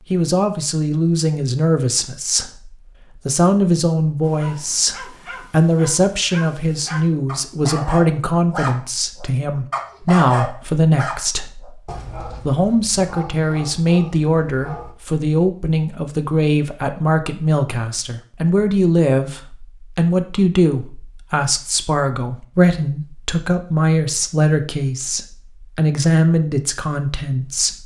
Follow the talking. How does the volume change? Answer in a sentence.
The loudness of the talking stays about the same.